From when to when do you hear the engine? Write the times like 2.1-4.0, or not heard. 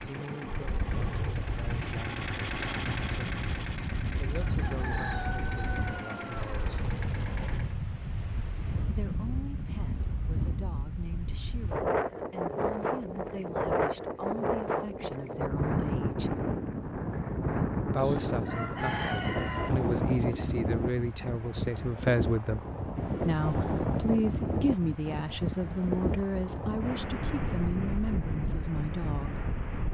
0.0-7.8.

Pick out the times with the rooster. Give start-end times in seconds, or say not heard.
4.4-6.9, 17.9-19.7.